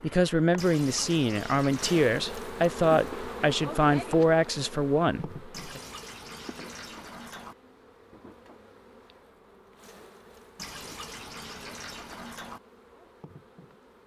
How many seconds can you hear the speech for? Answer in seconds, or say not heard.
6 s.